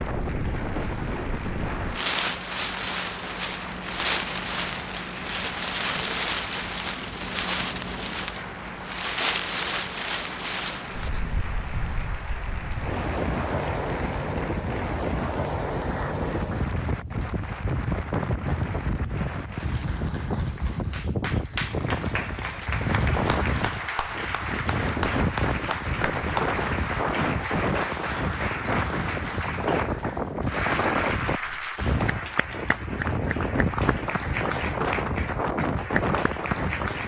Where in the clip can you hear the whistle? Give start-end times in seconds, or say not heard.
not heard.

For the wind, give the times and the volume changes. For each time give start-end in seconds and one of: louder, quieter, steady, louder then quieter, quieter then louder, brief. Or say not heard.
0.0-37.0 steady.